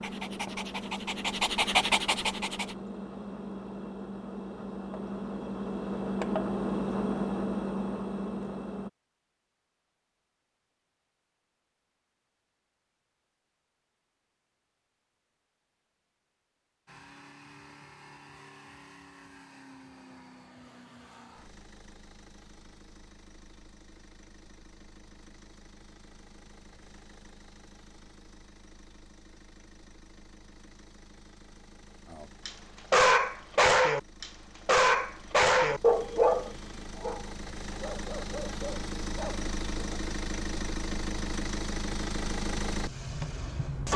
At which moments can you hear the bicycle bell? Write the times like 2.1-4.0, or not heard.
not heard.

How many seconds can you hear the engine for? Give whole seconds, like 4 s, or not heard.
36 s.